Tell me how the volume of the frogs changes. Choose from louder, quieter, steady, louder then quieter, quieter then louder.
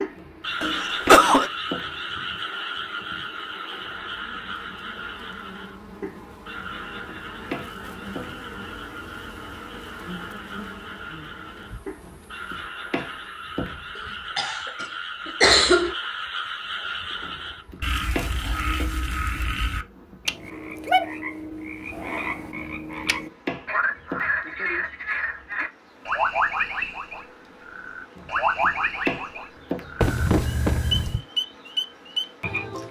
quieter then louder.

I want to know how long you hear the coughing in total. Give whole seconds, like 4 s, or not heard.
4 s.